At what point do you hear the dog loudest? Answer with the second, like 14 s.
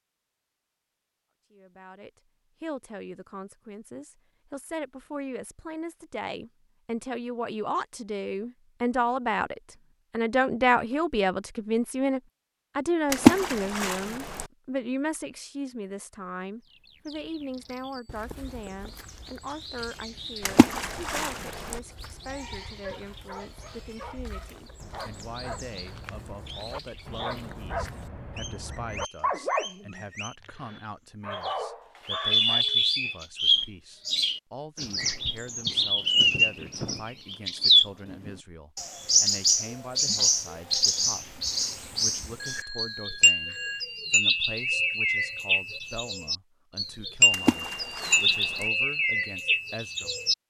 29 s.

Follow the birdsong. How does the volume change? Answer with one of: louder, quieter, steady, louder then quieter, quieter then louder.
louder.